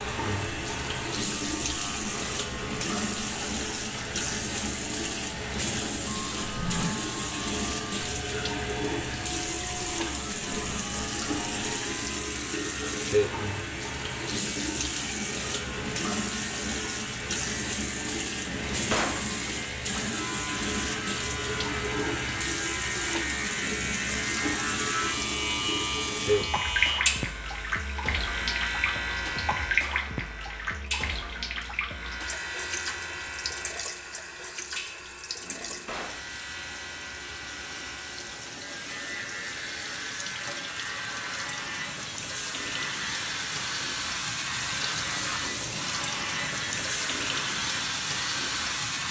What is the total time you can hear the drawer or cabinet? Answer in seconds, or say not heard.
2 s.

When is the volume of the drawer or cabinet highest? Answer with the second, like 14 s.
19 s.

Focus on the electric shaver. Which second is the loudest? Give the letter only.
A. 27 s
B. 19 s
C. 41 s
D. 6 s
A.